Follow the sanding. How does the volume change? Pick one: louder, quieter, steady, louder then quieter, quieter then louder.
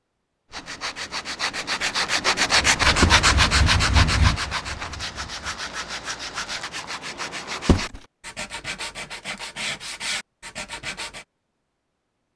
quieter.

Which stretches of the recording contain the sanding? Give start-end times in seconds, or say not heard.
0.5-11.2.